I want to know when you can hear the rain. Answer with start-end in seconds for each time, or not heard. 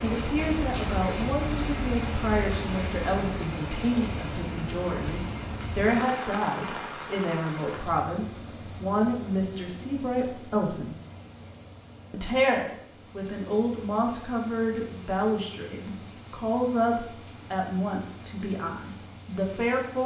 0.0-20.0.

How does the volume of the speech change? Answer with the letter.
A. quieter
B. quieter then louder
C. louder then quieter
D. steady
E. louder
D.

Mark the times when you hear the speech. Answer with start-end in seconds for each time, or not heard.
0.0-10.9, 12.1-20.0.